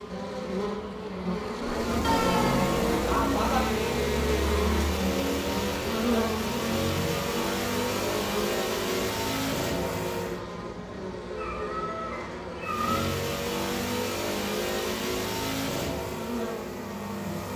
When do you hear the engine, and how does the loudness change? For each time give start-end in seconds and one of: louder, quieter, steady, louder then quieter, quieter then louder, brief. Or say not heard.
1.6-10.4 steady
12.6-17.5 quieter.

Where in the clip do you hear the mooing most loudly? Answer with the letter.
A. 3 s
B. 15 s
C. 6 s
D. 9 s
A.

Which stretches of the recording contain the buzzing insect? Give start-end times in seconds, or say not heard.
0.0-17.5.